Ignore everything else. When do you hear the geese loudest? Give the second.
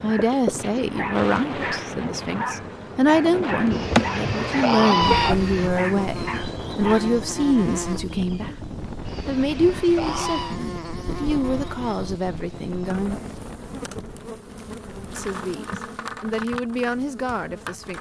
5 s.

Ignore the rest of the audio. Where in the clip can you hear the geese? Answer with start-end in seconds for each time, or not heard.
3.7-5.7, 9.1-10.6.